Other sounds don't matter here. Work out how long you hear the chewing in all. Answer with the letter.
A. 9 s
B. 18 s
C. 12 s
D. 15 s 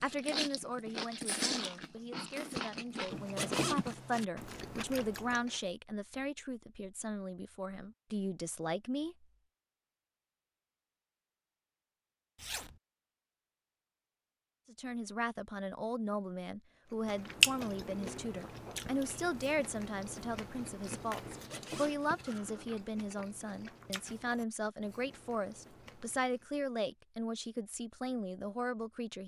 D.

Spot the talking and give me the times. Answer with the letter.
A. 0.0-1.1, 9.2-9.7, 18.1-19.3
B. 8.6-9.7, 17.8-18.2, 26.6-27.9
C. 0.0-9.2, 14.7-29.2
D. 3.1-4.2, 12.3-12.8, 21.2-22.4
C.